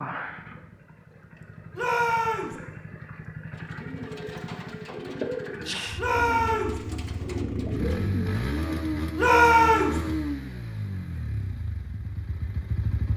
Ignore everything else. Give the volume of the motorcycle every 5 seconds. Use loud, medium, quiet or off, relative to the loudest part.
medium, loud, loud.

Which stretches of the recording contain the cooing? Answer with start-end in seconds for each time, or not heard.
3.5-8.7.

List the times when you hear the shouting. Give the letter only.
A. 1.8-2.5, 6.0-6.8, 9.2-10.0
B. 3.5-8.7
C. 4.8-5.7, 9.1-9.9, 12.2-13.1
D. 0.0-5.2
A.